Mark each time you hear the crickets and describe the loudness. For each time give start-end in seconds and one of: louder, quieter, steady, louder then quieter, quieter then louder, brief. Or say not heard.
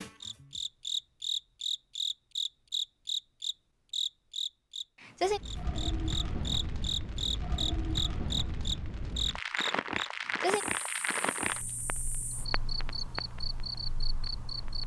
0.0-14.8 quieter.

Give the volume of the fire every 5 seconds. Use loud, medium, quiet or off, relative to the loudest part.
off, loud, loud.